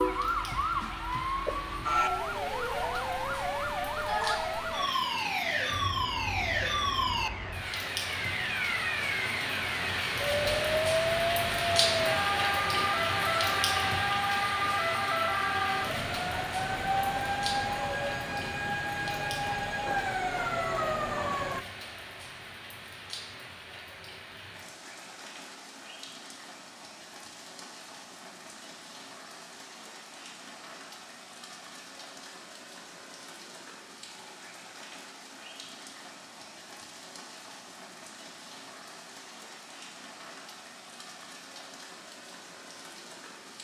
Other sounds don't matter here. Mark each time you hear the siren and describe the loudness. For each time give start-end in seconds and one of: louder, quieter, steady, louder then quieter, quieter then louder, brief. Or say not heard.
0.0-21.6 steady.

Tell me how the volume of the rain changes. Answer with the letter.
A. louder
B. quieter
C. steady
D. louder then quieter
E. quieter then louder
D.